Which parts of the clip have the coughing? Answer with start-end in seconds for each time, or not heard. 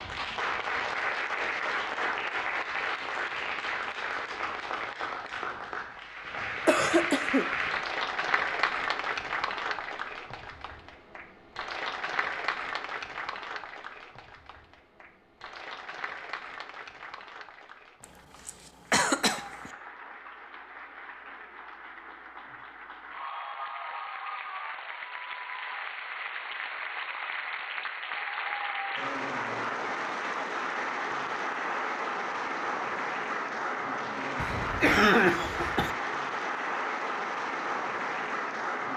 6.5-7.5, 18.4-19.7, 34.4-35.9.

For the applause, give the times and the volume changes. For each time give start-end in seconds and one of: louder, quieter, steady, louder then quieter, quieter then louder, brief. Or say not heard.
0.0-38.9 quieter then louder.